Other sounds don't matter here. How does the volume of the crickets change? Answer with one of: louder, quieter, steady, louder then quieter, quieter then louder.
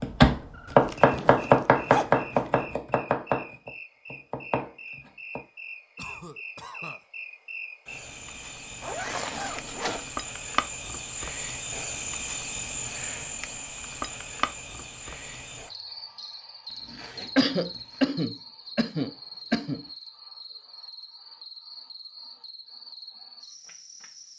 louder then quieter.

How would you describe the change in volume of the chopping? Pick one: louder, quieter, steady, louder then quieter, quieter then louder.
quieter.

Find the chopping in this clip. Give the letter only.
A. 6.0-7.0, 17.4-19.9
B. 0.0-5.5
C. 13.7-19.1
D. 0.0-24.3
B.